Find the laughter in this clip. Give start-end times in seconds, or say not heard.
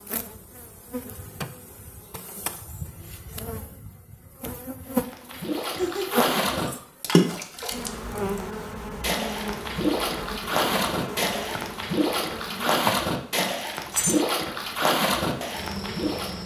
5.8-6.3.